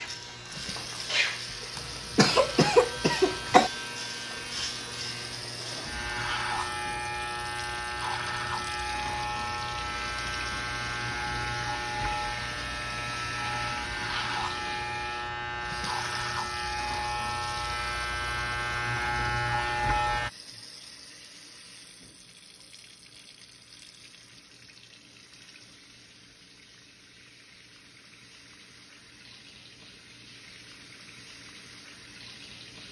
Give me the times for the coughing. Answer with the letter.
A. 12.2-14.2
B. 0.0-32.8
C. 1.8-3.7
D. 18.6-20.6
C.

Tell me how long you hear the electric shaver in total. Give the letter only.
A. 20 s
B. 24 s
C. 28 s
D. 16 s
A.